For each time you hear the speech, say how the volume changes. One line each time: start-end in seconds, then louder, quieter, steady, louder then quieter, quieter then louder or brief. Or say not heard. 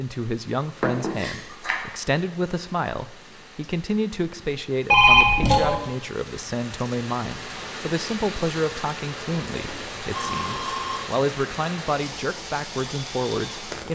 0.0-13.9 steady.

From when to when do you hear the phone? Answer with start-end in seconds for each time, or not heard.
0.8-1.8, 4.9-5.8, 9.7-11.1.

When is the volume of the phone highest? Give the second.
5 s.